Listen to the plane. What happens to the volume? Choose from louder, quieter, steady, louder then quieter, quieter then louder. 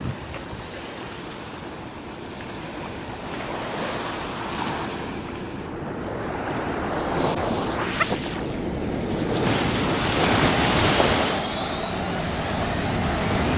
louder.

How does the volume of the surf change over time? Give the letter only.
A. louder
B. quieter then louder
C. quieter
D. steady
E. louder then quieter
A.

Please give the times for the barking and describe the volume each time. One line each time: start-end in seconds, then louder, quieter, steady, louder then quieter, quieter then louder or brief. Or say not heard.
not heard.